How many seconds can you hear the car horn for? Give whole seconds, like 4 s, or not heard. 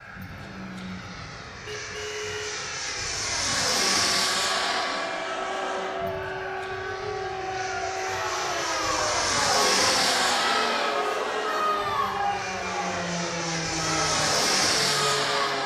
2 s.